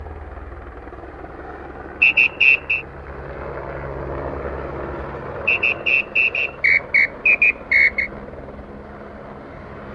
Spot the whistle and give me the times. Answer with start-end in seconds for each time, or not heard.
2.0-2.9, 5.5-8.1.